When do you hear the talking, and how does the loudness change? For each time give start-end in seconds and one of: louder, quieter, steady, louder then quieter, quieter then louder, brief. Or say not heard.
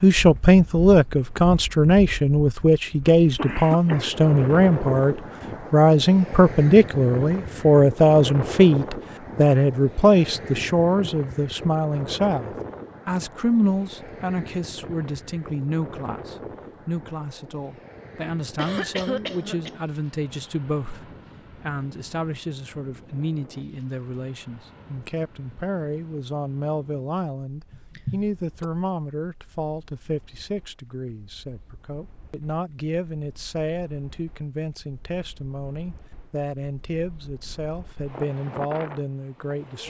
0.0-39.8 quieter.